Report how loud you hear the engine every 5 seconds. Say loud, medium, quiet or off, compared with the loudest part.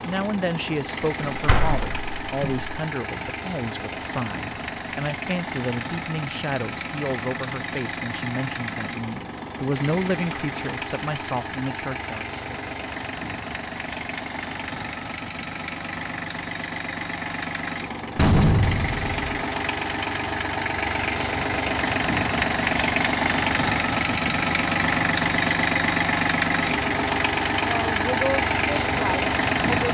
medium, medium, medium, medium, loud, loud.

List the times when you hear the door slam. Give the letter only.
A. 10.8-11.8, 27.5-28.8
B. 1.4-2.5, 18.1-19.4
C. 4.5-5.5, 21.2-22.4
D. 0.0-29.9
B.